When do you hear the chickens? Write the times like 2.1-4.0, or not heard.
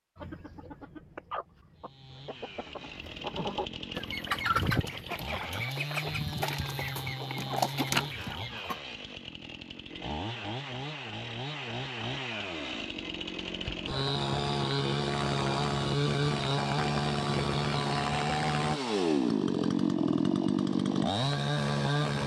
0.1-8.8.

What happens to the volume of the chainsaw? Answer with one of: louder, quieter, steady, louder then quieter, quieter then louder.
louder.